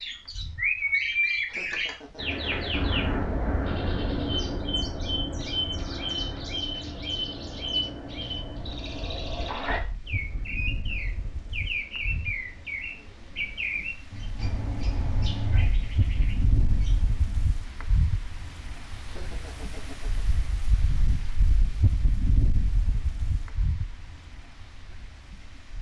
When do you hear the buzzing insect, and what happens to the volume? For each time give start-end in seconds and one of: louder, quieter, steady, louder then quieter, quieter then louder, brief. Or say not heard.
not heard.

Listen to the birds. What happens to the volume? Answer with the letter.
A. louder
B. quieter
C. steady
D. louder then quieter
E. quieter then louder
B.